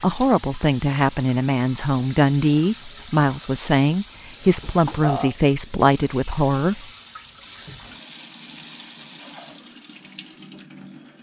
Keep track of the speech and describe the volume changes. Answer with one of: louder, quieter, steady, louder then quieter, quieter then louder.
steady.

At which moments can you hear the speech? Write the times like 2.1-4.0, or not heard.
0.0-6.8.